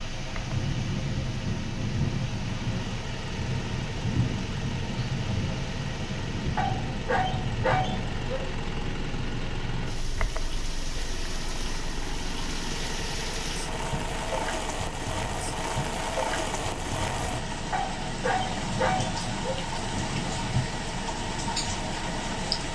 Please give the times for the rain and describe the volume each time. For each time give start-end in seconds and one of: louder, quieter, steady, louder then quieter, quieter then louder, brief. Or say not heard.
0.0-22.7 quieter then louder.